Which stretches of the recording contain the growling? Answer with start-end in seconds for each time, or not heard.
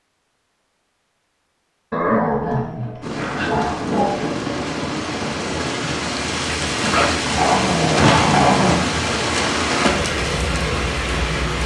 1.9-4.3, 6.9-8.8.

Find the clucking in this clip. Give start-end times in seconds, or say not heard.
not heard.